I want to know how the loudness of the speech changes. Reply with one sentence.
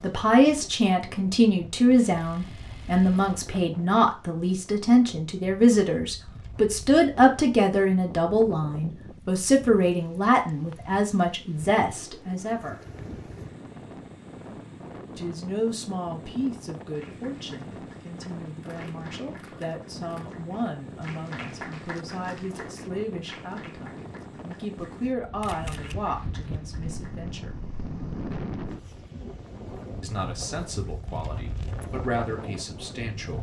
The volume of the speech goes down.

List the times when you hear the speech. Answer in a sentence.
You can hear the speech from 0.0 to 12.8 s, from 15.2 to 27.6 s and from 30.0 to 33.3 s.